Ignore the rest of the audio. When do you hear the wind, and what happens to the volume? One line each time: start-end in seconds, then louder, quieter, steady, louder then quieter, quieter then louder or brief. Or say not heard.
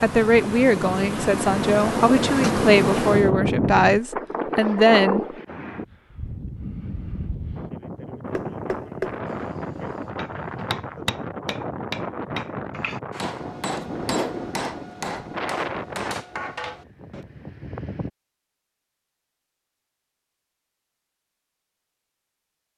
0.0-18.1 quieter.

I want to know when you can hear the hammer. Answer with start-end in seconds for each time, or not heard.
8.2-17.2.